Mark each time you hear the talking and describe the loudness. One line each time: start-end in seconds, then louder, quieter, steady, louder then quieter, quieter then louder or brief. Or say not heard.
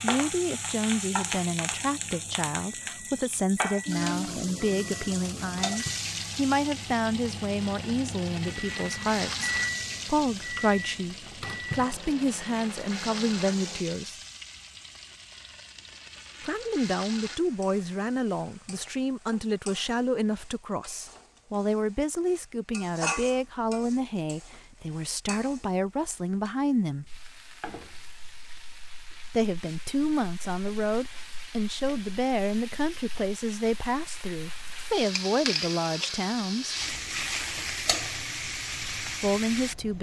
0.0-14.2 steady
16.4-27.1 steady
29.3-36.8 steady
39.0-39.9 brief.